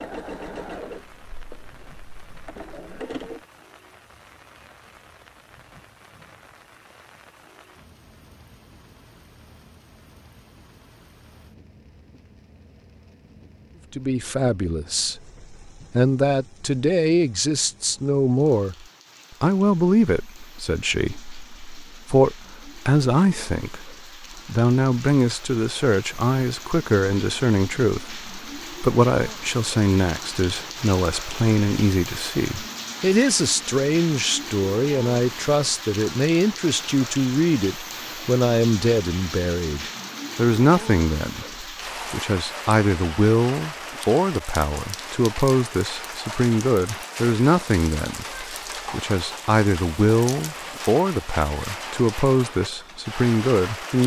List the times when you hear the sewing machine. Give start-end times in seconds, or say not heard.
0.0-3.5.